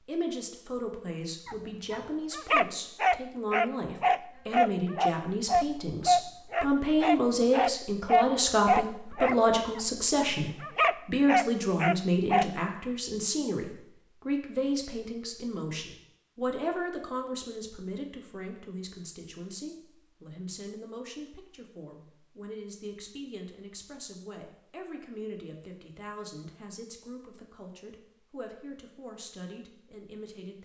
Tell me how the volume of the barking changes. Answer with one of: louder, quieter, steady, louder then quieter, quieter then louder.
steady.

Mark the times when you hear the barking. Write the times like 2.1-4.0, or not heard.
1.4-12.4.